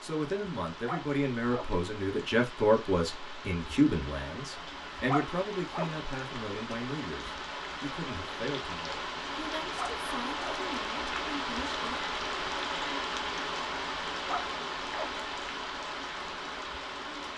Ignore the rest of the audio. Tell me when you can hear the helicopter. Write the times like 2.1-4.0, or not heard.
not heard.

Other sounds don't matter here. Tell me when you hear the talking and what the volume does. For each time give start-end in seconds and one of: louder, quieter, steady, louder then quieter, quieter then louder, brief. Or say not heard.
0.0-12.1 quieter.